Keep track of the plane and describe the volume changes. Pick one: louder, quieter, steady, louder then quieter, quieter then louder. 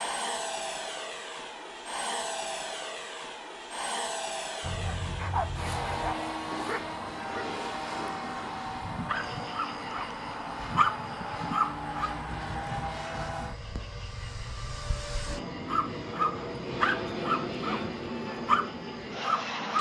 steady.